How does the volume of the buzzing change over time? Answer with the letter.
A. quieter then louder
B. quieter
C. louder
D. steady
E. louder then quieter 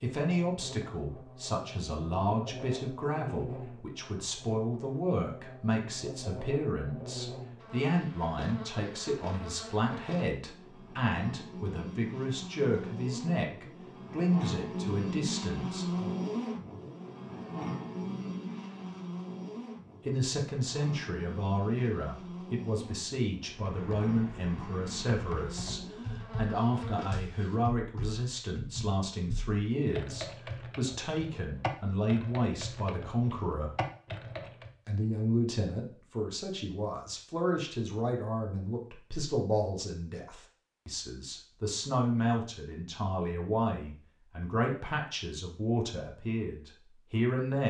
E.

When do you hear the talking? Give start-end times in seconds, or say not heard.
0.0-16.1, 20.1-33.7, 34.9-47.6.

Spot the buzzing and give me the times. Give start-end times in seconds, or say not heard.
0.1-27.6.